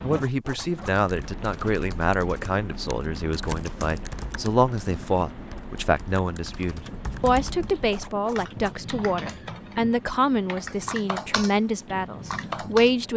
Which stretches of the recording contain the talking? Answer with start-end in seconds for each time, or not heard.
0.0-13.1.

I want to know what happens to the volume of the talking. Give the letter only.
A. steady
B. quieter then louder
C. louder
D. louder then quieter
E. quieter
A.